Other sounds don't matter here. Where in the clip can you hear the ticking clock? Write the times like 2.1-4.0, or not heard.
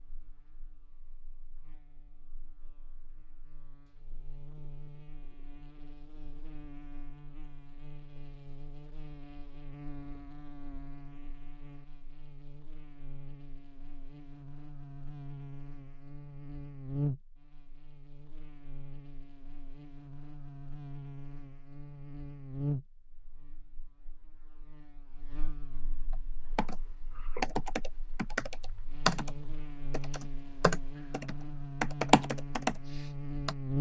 not heard.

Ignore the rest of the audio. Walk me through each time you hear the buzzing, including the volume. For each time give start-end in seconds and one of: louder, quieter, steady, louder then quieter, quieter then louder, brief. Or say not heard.
0.0-33.7 louder.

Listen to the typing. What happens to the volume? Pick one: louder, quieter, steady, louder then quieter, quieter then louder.
louder.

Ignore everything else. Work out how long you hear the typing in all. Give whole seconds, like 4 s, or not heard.
7 s.